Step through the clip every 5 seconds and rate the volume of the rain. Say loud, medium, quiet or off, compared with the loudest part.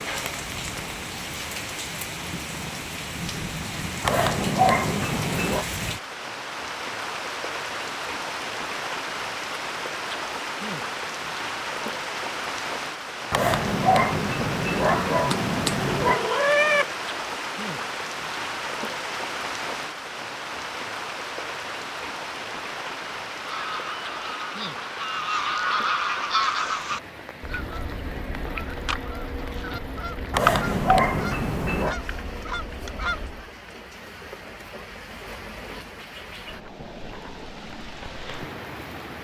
loud, loud, loud, loud, loud, medium, medium, medium.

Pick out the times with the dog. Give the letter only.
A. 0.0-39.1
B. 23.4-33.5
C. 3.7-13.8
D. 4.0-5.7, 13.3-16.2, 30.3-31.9
D.